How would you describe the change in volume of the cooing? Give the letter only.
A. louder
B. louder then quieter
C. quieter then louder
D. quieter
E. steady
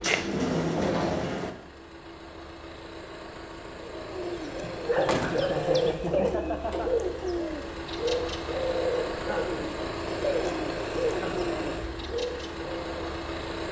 E.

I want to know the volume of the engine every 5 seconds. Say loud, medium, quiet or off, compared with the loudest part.
medium, loud, loud.